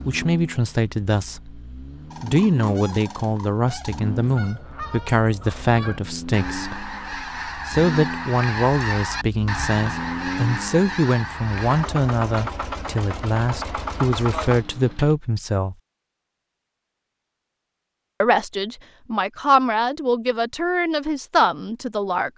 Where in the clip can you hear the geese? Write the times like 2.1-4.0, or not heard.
2.1-11.9.